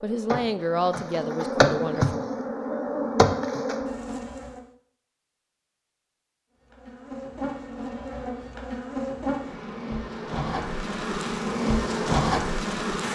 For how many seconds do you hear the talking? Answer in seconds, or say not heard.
2 s.